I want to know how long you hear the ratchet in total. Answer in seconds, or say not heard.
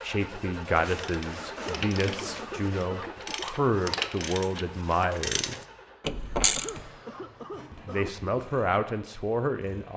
6 s.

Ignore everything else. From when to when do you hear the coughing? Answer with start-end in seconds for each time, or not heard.
1.4-3.5, 6.4-8.3.